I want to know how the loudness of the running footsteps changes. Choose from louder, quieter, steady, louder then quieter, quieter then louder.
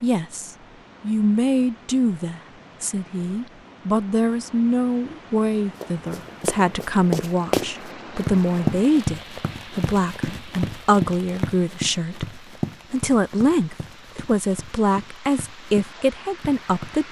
quieter.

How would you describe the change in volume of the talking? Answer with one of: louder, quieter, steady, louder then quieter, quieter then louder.
steady.